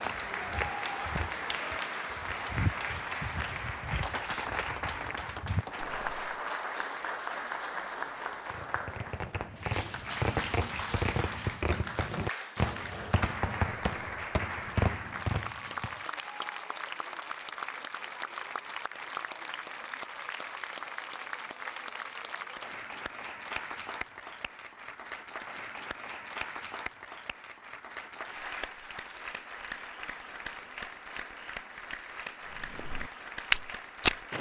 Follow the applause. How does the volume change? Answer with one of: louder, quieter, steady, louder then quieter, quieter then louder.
quieter.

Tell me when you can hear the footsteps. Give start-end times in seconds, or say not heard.
0.0-6.3, 32.5-34.3.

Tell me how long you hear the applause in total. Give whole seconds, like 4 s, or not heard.
34 s.